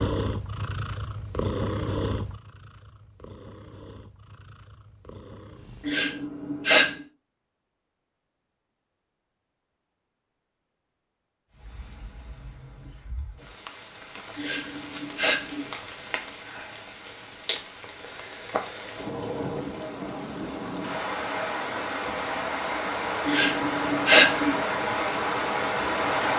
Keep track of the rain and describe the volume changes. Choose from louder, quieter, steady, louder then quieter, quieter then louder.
louder.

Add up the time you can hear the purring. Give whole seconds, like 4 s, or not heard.
6 s.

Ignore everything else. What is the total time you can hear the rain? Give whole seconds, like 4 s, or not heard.
15 s.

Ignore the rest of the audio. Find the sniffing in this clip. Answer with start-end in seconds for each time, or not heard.
5.8-6.8, 14.3-15.7, 23.2-24.6.